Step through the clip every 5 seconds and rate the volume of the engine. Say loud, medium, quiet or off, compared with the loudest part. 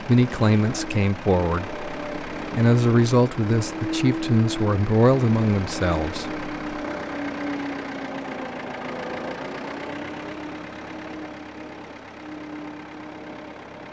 loud, loud, medium.